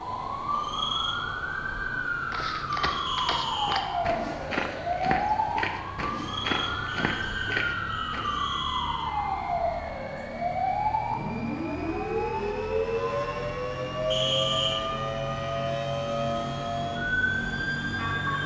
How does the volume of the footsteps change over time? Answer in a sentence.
The loudness of the footsteps stays about the same.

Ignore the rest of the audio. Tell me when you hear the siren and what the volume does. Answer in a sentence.
The siren can be heard from 0.0 to 18.4 s, at a steady volume.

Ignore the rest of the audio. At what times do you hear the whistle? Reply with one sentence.
You can hear the whistle from 3.0 to 3.9 s, from 6.8 to 9.1 s and from 14.1 to 14.8 s.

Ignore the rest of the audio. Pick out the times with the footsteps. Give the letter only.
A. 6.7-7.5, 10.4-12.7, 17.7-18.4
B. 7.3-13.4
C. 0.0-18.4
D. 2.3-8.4
D.